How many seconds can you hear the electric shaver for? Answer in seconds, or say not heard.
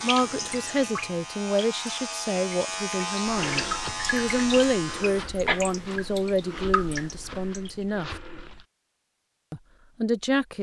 5 s.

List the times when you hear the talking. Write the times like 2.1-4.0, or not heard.
0.0-8.1, 9.5-10.5.